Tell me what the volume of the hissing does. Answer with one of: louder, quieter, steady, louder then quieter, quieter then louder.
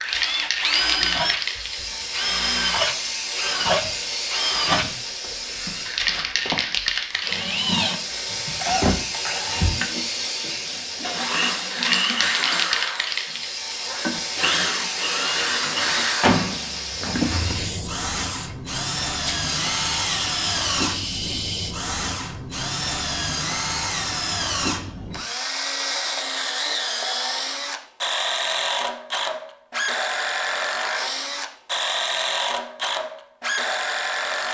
steady.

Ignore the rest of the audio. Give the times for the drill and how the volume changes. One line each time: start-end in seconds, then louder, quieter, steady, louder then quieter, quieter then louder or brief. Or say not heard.
0.0-34.4 steady.